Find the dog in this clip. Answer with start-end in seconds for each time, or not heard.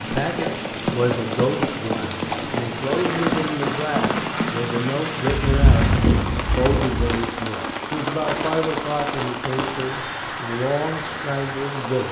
not heard.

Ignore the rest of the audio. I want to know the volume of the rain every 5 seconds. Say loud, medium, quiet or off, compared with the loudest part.
loud, loud, medium.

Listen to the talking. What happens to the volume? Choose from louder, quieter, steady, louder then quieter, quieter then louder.
steady.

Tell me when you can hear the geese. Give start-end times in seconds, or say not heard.
5.3-7.1.